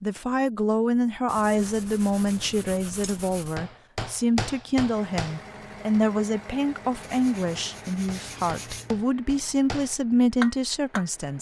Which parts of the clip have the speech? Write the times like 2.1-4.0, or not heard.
0.0-11.3.